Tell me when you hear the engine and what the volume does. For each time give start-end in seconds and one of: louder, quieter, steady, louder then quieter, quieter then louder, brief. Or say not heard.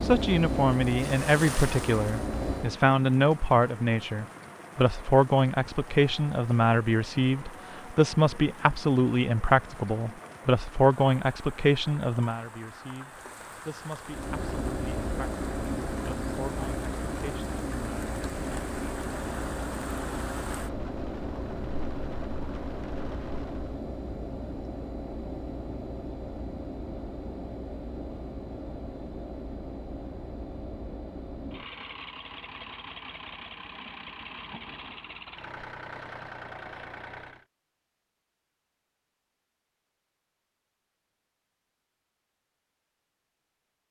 0.0-2.8 brief
14.1-37.5 quieter.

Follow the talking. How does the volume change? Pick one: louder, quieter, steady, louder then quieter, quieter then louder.
quieter.